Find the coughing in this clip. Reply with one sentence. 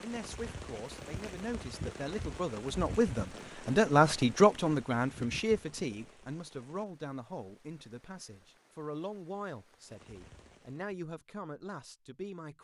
You can't hear the coughing here.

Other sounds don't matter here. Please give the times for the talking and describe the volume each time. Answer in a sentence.
You can hear the talking from 0.0 to 12.5 s, getting louder then quieter.